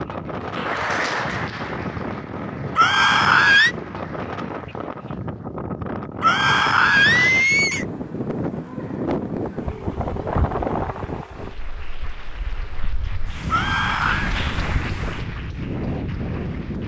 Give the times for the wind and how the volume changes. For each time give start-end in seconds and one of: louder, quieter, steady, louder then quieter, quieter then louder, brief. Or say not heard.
0.0-16.8 steady.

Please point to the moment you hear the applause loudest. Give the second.
1 s.